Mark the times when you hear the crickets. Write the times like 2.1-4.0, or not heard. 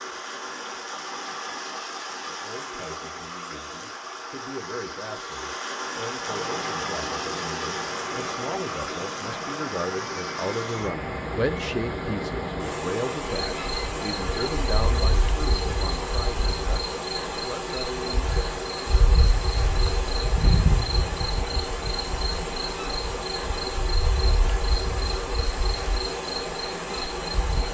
13.4-27.6.